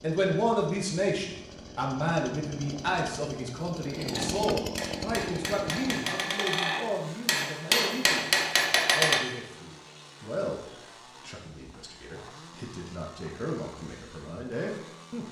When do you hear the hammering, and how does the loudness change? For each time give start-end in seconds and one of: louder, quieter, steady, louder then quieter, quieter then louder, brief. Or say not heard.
4.1-9.2 louder.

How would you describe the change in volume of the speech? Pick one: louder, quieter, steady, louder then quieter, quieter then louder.
quieter.